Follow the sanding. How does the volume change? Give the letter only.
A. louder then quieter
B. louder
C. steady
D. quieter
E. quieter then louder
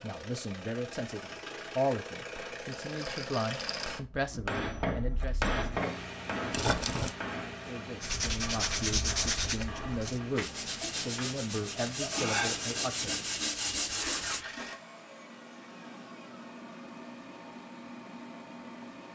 E.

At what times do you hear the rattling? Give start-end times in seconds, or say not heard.
2.7-3.9, 6.5-7.2, 13.8-14.8.